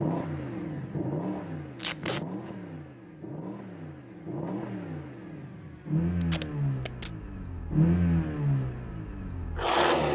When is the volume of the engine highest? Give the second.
8 s.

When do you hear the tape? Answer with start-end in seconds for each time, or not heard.
1.8-2.2, 6.2-7.1.